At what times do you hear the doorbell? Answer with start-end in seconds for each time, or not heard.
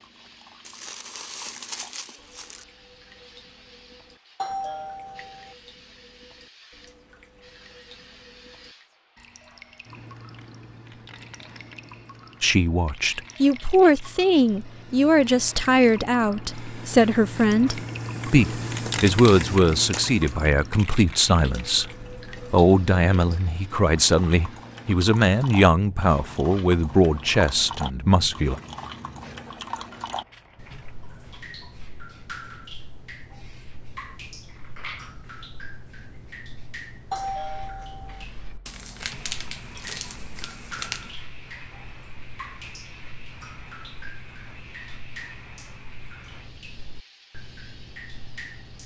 4.3-5.5, 37.1-38.2.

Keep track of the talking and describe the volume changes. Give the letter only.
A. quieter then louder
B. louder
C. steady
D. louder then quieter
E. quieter
C.